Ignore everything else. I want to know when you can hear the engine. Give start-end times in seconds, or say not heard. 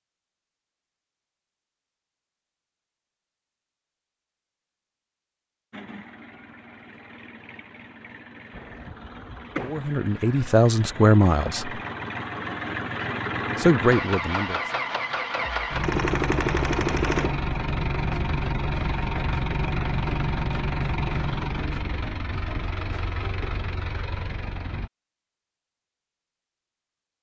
5.7-24.9.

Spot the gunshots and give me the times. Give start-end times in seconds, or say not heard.
8.5-9.9, 15.8-17.4.